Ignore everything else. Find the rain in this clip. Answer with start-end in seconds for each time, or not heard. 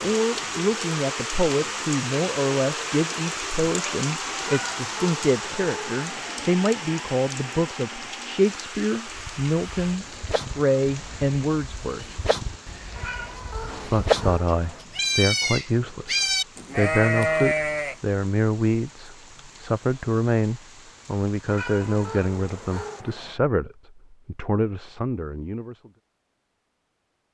0.0-23.1.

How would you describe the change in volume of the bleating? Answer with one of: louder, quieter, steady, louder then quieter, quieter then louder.
louder.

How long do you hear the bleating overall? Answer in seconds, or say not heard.
9 s.